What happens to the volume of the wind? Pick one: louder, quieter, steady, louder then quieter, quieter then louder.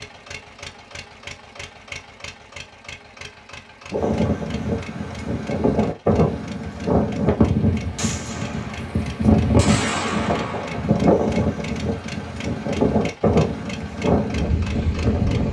steady.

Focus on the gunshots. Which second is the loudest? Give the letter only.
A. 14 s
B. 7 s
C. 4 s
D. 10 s
D.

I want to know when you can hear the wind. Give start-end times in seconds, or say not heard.
3.9-15.4.